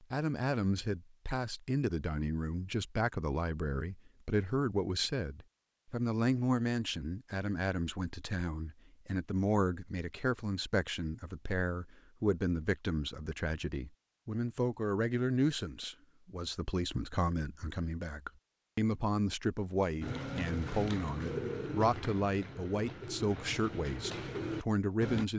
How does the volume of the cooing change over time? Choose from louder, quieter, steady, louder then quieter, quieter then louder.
quieter then louder.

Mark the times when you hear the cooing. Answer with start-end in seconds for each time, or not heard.
20.0-25.3.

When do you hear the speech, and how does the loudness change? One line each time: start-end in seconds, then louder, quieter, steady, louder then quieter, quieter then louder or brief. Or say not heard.
0.0-25.3 steady.